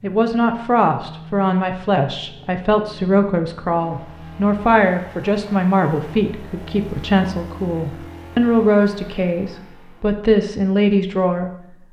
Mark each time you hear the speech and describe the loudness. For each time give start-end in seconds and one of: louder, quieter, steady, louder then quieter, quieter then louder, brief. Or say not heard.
0.0-11.5 steady.